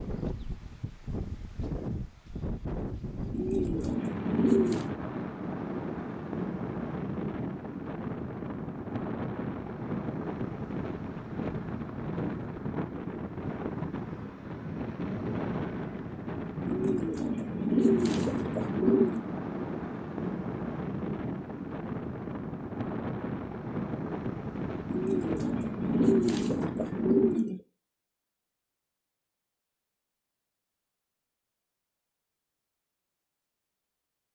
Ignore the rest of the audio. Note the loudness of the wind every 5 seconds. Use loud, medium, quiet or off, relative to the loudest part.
loud, loud, loud, loud, loud, loud, off.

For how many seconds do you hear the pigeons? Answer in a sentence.
You can hear the pigeons for 7 seconds altogether.